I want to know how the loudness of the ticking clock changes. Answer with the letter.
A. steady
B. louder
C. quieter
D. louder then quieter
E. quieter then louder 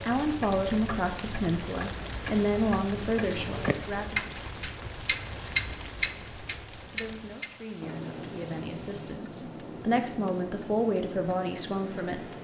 D.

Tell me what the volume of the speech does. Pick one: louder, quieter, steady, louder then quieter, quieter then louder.
quieter then louder.